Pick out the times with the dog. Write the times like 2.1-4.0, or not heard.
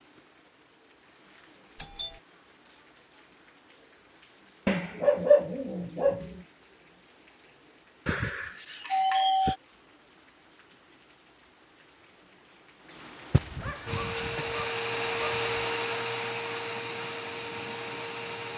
4.7-6.4, 13.3-15.7.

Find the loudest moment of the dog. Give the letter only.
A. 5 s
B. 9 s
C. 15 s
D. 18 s
A.